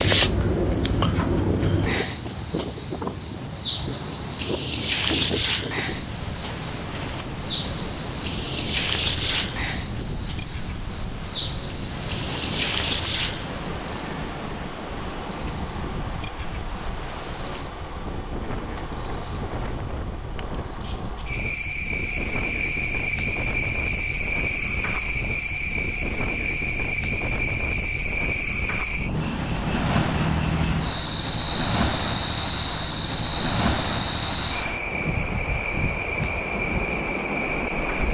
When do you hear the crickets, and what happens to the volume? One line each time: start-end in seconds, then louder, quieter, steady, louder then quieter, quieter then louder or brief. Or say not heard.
0.0-38.0 quieter.